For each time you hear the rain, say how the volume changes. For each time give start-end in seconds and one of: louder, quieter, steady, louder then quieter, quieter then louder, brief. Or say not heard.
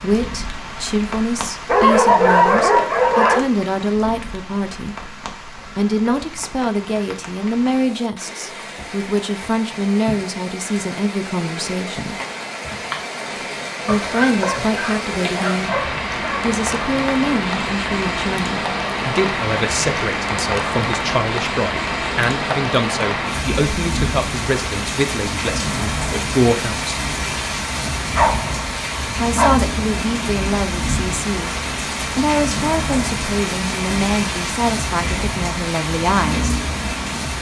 0.0-37.3 louder.